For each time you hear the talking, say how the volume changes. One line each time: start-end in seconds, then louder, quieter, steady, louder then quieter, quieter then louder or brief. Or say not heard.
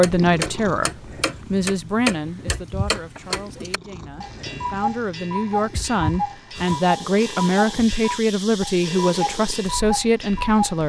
0.0-10.8 quieter then louder.